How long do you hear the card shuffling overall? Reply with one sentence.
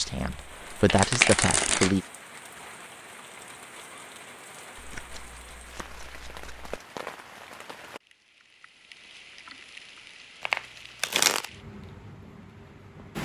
The card shuffling can be heard for 4 seconds in total.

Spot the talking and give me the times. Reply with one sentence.
You can hear the talking from 0.0 to 2.0 s.